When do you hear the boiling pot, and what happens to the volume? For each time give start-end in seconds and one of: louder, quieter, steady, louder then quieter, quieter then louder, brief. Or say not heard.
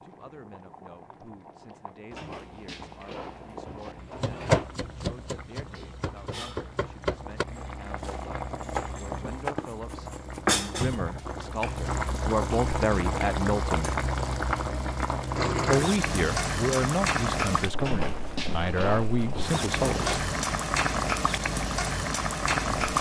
0.0-22.9 louder.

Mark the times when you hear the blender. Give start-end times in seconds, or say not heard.
not heard.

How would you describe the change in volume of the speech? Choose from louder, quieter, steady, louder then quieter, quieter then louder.
louder.